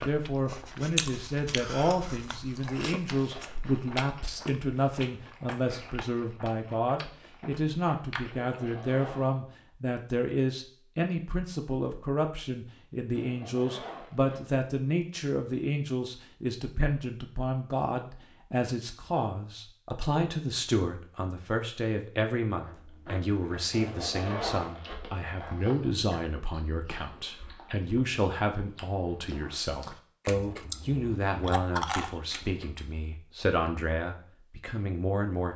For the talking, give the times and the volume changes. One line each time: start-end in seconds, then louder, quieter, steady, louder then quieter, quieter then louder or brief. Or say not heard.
0.0-35.5 steady.